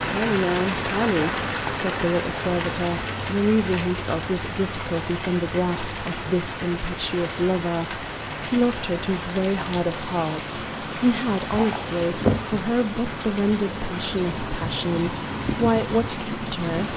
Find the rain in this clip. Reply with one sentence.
The rain can be heard from 0.0 to 16.9 s.